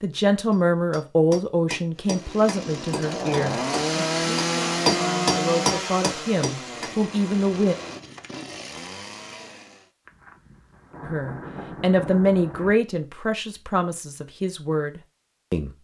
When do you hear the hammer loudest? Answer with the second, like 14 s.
5 s.